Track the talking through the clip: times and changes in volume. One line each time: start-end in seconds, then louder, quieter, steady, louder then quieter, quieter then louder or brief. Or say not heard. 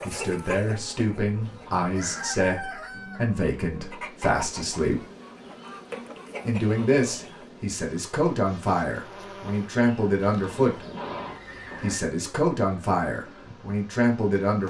0.1-5.0 steady
6.5-10.8 quieter then louder
11.8-14.6 brief.